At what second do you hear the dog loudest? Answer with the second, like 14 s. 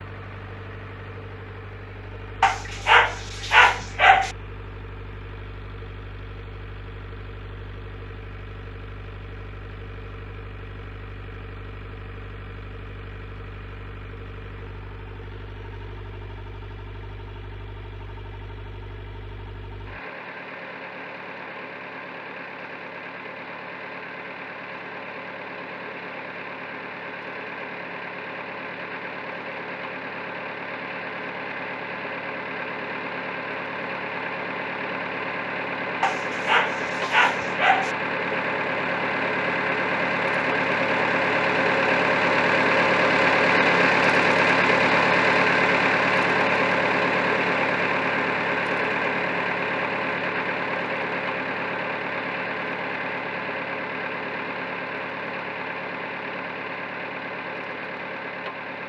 4 s.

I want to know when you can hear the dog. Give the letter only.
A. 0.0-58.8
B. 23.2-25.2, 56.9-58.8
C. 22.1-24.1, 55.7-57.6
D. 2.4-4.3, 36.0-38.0
D.